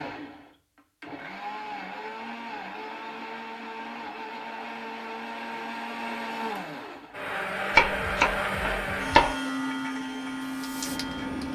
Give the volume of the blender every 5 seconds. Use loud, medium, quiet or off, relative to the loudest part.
medium, loud, loud.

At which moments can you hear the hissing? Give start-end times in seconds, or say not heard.
9.9-11.5.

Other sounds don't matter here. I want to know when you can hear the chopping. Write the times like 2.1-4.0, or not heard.
7.7-9.3.